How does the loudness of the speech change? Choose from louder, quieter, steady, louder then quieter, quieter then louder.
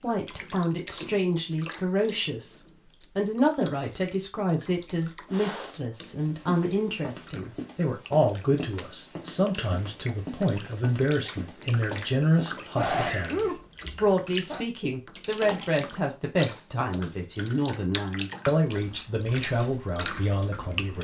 steady.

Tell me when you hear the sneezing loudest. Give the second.
13 s.